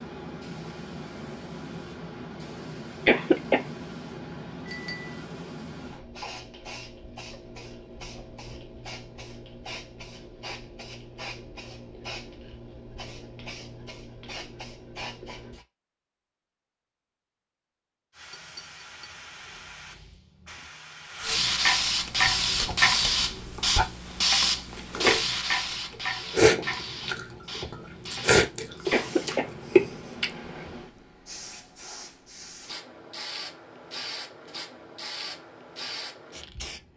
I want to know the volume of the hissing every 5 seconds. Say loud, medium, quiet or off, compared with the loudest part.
quiet, quiet, quiet, quiet, loud, medium, quiet, quiet.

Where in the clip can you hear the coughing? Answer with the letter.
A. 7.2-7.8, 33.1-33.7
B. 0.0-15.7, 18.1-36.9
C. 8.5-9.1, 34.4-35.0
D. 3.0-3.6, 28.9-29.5
D.